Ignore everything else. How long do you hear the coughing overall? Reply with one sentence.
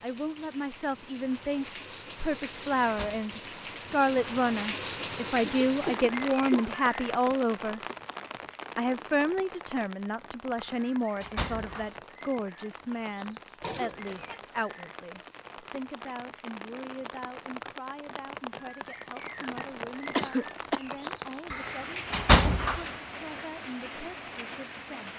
You can hear the coughing for 3 seconds altogether.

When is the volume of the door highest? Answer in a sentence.
The loudest moment of the door is at 22 seconds.